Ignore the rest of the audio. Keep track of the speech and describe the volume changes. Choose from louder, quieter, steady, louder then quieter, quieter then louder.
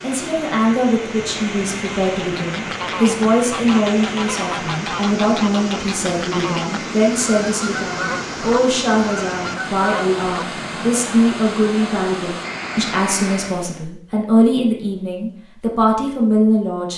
steady.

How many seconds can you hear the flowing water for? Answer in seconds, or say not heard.
14 s.